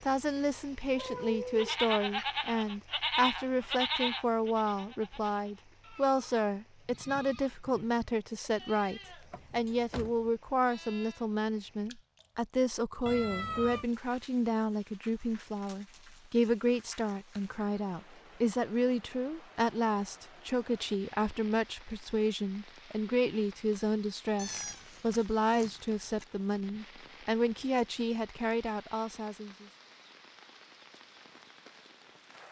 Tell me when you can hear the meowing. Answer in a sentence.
You can hear the meowing from 0.9 to 2.2 s, from 13.1 to 13.8 s and from 24.4 to 26.2 s.